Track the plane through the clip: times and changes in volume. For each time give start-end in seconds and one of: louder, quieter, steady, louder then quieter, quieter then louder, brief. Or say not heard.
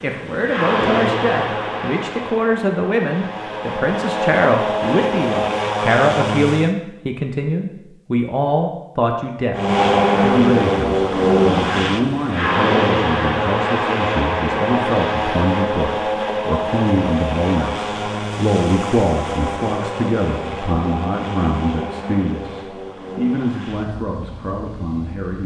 0.0-6.7 quieter then louder
9.6-25.4 quieter.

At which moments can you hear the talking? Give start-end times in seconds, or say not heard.
0.0-25.4.